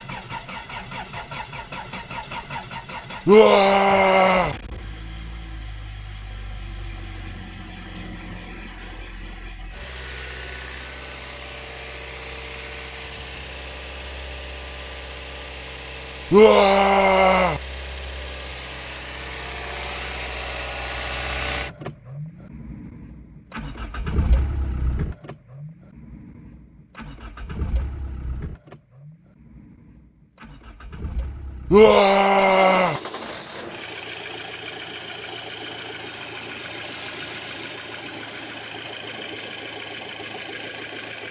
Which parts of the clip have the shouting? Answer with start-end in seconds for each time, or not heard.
3.2-4.5, 16.3-17.6, 31.7-33.0.